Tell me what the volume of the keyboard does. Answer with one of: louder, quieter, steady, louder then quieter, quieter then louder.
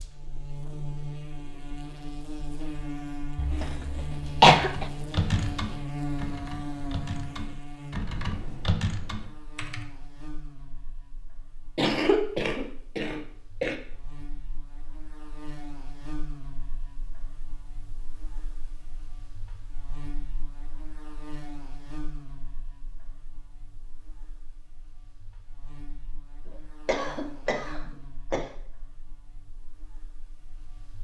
quieter then louder.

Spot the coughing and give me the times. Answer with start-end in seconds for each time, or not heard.
3.4-4.8, 11.8-13.8, 26.4-28.4.